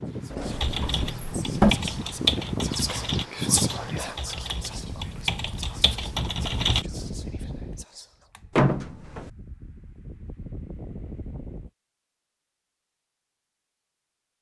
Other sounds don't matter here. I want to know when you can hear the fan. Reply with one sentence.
You can hear the fan from 0.0 to 11.7 s.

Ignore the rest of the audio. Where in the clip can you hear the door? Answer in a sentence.
The door can be heard from 0.3 to 1.8 s and from 8.6 to 9.3 s.